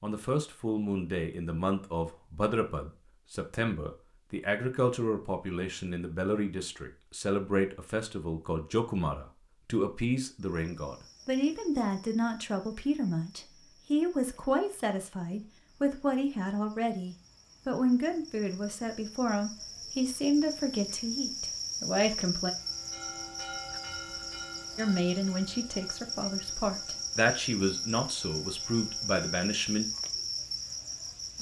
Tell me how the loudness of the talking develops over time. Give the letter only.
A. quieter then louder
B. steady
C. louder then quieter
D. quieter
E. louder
B.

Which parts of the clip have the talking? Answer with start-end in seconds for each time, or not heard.
0.0-22.5, 24.8-29.9.